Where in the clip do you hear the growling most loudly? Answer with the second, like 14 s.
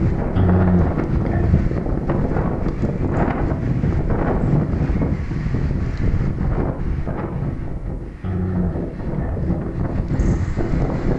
1 s.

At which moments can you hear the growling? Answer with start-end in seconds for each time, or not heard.
0.3-1.6, 8.2-9.7.